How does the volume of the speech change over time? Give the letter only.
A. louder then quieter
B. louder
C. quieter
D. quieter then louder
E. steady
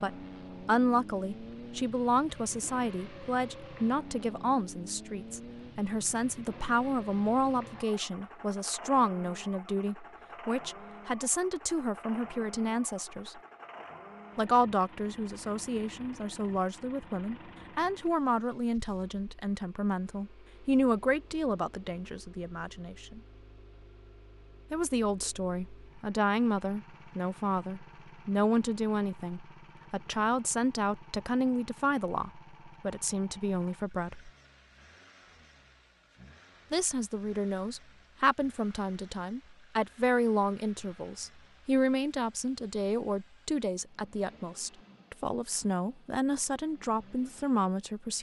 E.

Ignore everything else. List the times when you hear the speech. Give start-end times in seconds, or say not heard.
0.0-13.4, 14.3-23.2, 24.7-34.3, 36.7-48.1.